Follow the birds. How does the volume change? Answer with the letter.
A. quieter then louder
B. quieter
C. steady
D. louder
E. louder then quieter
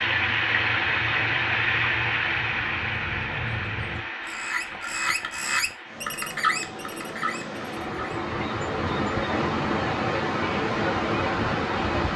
D.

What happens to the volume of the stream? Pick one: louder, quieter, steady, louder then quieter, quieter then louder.
quieter then louder.